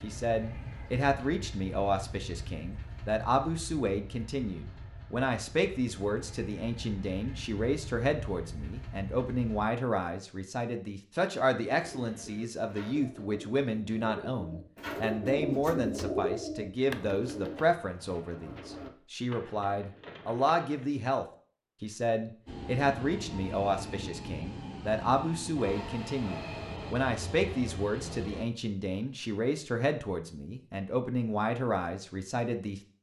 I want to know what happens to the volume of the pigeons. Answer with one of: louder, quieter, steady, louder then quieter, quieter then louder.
louder then quieter.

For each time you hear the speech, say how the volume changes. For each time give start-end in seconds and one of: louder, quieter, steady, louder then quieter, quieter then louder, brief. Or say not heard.
0.0-32.8 steady.